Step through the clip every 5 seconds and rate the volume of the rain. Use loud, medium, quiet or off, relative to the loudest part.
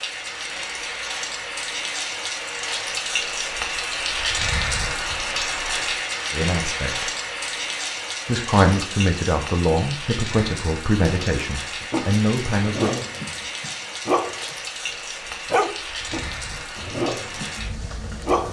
loud, loud, medium, medium.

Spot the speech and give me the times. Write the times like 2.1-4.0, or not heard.
6.3-7.1, 8.2-13.1.